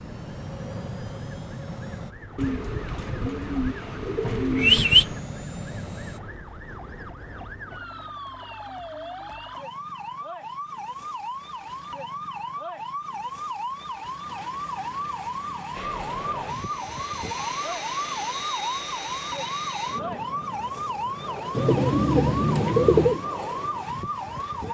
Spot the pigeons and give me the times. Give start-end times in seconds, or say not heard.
2.4-5.2, 21.6-23.2.